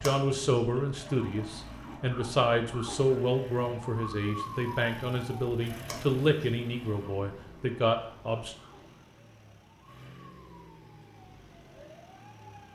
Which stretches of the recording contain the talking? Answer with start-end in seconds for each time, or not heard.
0.0-8.6.